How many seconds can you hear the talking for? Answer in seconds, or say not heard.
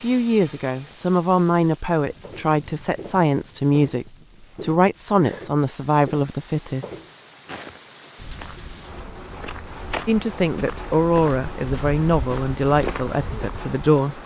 11 s.